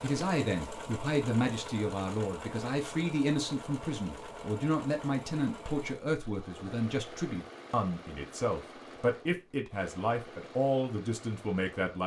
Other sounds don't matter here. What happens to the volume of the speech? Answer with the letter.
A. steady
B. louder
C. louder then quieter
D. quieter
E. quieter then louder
A.